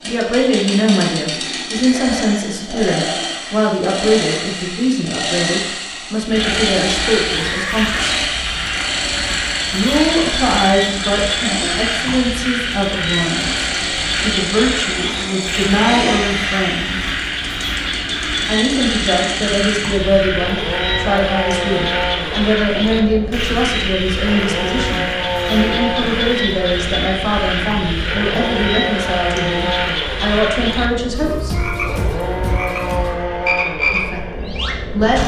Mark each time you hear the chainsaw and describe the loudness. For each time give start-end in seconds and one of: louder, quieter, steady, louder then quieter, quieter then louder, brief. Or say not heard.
0.0-35.2 steady.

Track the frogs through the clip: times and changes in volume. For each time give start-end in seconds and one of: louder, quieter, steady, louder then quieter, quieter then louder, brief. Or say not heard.
6.2-35.2 steady.